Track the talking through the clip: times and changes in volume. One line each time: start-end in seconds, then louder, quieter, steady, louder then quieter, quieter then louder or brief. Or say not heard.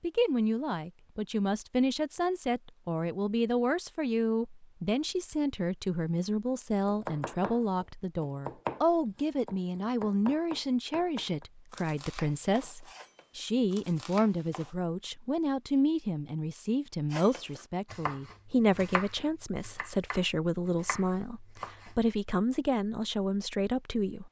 0.0-24.2 steady.